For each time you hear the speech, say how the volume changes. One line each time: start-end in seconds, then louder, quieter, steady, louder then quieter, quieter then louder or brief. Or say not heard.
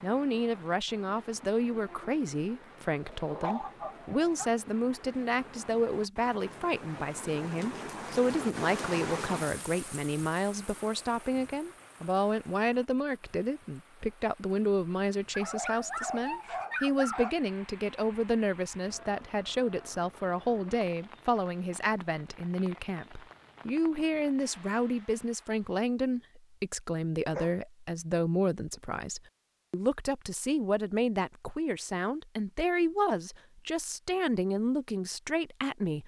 0.0-36.0 steady.